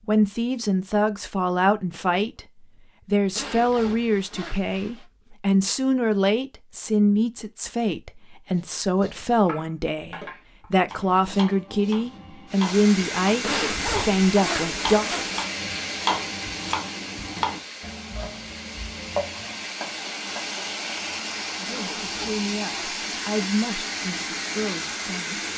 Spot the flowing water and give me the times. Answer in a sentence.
The flowing water can be heard from 12.4 to 25.5 s.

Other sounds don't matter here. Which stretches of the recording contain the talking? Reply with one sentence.
The talking can be heard from 0.1 to 15.1 s and from 21.6 to 25.5 s.